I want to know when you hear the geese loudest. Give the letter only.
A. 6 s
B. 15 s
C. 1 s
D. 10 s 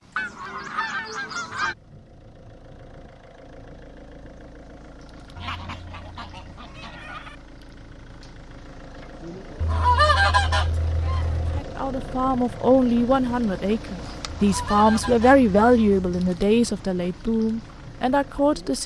D.